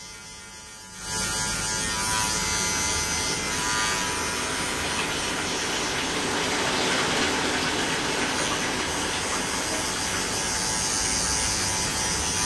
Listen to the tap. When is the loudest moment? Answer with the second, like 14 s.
7 s.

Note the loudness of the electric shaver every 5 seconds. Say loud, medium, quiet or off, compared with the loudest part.
loud, medium, loud.